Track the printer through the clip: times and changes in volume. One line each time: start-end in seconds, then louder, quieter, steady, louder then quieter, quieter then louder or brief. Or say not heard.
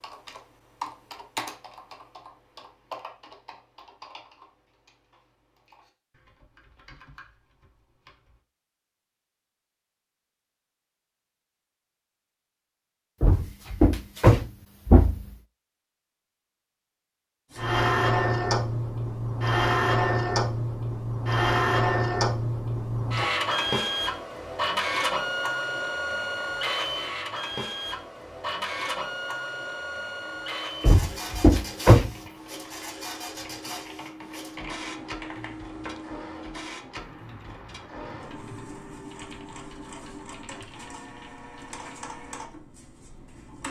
17.5-43.6 quieter.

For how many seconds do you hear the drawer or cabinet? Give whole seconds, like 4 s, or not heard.
3 s.